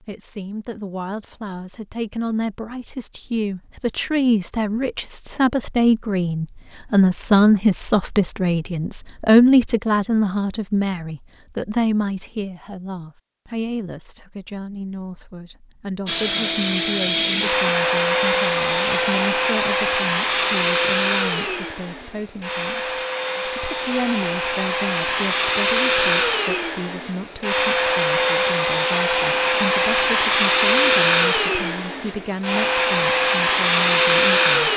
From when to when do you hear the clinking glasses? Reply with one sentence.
You can't hear the clinking glasses here.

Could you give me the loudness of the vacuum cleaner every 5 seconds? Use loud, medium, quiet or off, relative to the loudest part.
off, off, off, loud, medium, loud, loud.